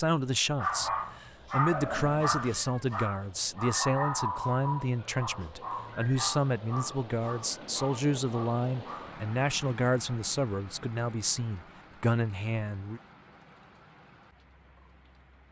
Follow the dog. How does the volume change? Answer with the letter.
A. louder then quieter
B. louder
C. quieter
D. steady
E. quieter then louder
C.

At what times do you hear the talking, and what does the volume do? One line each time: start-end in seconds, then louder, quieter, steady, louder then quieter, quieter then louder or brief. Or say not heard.
0.0-13.0 steady.